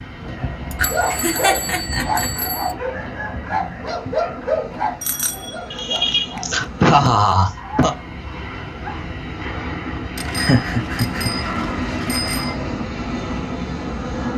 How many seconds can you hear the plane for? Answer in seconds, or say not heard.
14 s.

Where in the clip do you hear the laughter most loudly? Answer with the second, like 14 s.
7 s.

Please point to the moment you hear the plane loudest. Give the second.
12 s.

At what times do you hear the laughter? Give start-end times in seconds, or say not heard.
0.7-2.3, 5.7-8.0, 10.3-11.3.